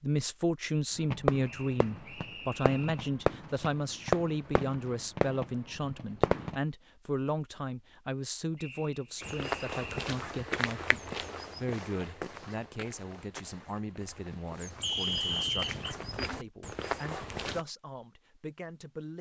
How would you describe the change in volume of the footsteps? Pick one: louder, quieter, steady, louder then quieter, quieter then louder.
quieter then louder.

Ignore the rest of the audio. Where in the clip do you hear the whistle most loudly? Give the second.
15 s.